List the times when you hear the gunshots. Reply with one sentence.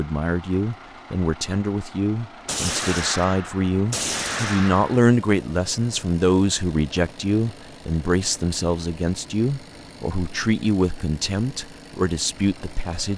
You can hear the gunshots from 2.5 to 5.0 s.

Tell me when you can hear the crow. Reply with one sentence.
You can't hear the crow here.